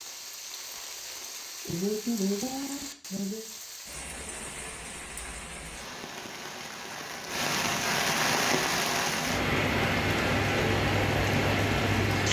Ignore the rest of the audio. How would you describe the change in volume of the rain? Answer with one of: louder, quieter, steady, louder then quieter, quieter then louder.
louder.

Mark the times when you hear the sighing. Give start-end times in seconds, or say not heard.
1.6-3.4.